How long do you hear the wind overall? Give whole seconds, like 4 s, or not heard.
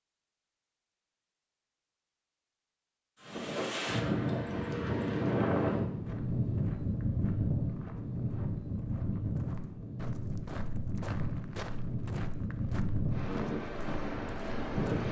12 s.